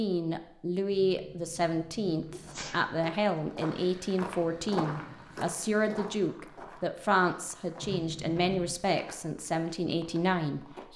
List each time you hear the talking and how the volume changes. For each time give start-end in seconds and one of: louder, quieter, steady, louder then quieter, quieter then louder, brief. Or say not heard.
0.0-10.9 steady.